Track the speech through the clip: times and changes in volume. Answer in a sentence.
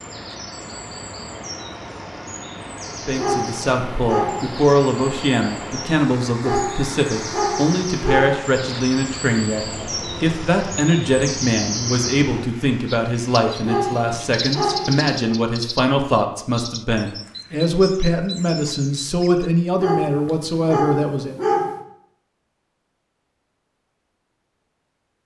The speech can be heard from 3.0 to 21.4 s, at a steady volume.